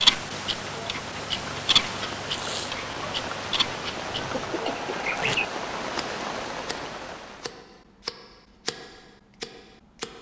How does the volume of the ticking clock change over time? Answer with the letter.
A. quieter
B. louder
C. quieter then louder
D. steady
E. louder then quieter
A.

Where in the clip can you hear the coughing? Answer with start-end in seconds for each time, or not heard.
4.1-4.9.